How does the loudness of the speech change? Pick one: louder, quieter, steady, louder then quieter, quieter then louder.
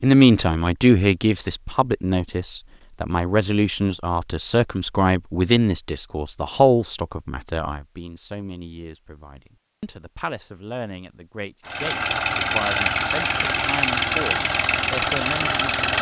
quieter.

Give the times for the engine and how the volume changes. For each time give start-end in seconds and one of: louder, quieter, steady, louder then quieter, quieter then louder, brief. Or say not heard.
11.7-15.9 steady.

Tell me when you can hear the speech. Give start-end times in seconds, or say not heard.
0.0-15.8.